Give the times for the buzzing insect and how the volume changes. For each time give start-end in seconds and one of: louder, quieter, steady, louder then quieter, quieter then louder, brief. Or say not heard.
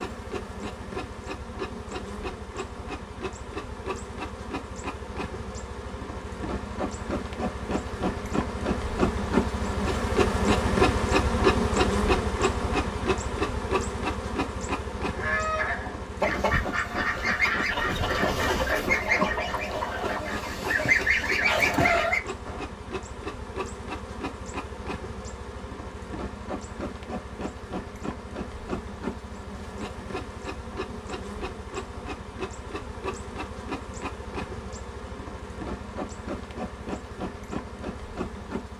0.0-38.7 louder then quieter.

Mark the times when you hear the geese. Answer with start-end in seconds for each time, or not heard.
15.2-22.6.